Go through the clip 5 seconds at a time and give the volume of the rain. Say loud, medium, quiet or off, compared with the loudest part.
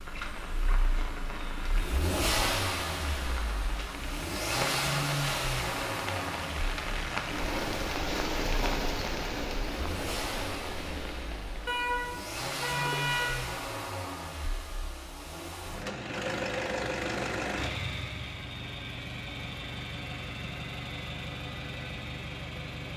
medium, loud, medium, off, off.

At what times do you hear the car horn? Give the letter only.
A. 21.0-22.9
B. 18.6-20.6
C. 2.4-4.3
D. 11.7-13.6
D.